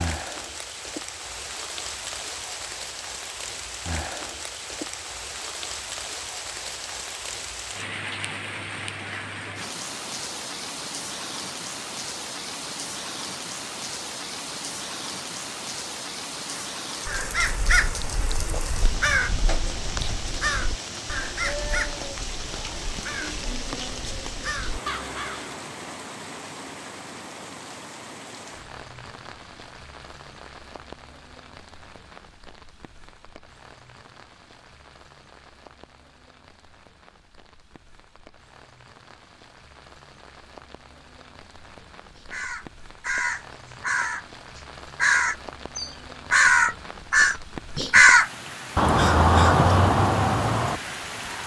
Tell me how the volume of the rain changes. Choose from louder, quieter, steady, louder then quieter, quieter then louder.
quieter then louder.